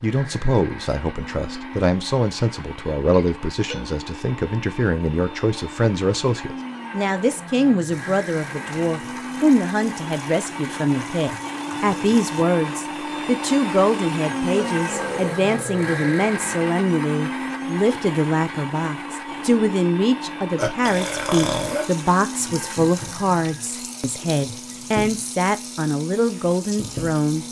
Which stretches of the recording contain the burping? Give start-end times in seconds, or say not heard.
3.1-3.9, 14.5-16.3, 20.6-21.9.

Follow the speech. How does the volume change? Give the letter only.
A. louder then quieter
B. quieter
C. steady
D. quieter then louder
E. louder
C.